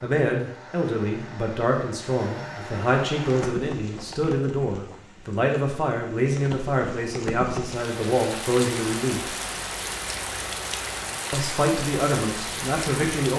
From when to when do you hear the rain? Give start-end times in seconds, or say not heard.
3.2-13.3.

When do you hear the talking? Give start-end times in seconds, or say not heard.
0.0-9.3, 11.3-13.3.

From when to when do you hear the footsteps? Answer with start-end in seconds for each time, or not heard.
not heard.